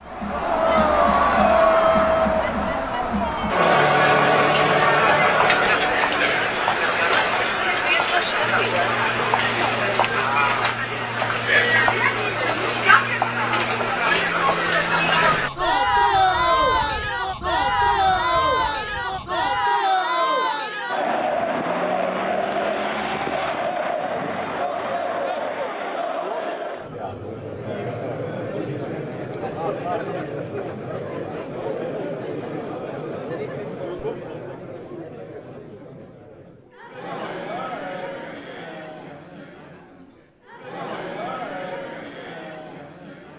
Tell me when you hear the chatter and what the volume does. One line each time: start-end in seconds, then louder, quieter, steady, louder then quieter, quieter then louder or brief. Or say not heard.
0.1-43.3 quieter.